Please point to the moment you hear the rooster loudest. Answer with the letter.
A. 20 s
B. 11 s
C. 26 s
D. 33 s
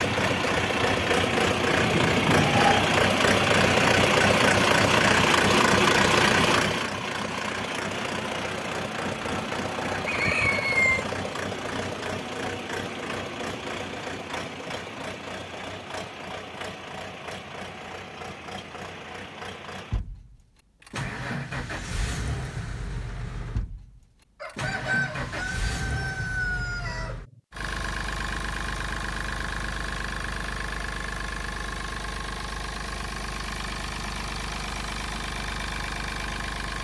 B.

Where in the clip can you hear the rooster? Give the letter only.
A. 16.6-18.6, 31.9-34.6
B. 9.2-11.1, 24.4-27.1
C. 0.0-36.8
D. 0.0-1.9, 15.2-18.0
B.